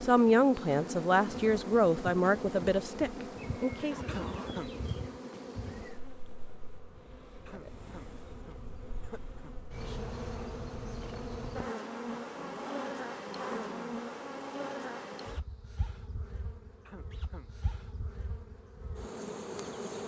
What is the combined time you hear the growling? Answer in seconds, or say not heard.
3 s.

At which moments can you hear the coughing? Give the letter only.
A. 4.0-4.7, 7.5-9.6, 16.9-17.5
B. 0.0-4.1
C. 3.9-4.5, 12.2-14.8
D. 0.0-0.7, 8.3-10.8
A.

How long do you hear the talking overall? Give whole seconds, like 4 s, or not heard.
4 s.